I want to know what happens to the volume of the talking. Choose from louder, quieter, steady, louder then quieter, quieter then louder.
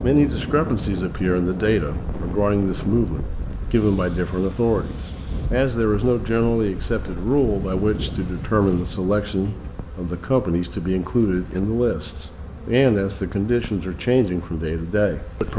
steady.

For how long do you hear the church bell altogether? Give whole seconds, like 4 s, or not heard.
not heard.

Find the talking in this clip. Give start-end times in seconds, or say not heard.
0.0-15.5.